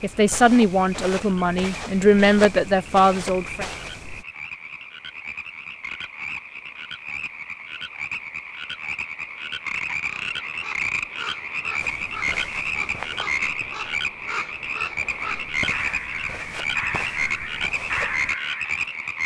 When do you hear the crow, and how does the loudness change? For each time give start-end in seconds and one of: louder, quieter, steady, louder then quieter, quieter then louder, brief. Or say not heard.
10.0-18.8 louder.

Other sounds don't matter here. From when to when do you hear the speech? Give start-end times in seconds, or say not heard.
0.0-3.7.